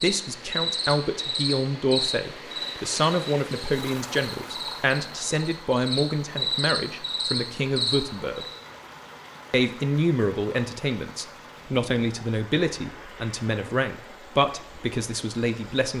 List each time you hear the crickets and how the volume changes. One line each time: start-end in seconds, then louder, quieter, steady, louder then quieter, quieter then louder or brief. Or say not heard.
0.0-8.6 quieter then louder.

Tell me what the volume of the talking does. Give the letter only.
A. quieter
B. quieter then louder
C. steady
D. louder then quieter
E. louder
C.